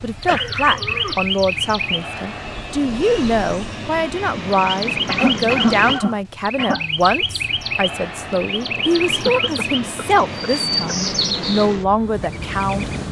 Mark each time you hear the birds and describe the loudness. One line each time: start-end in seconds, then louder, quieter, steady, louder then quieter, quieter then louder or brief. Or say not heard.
0.0-13.0 steady.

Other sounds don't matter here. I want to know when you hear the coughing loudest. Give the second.
6 s.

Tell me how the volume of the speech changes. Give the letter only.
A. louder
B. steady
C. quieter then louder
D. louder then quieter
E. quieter
B.